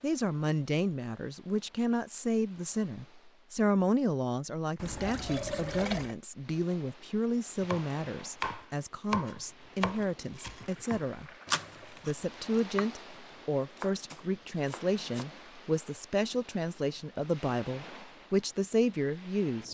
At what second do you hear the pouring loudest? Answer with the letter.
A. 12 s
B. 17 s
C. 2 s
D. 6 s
D.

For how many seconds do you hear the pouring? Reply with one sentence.
You can hear the pouring for 3 seconds altogether.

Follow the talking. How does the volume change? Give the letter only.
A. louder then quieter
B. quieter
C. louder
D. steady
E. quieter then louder
D.